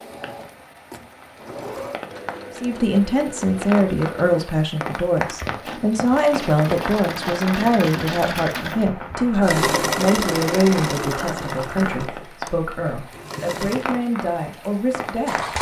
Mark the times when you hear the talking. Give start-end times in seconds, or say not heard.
2.5-15.3.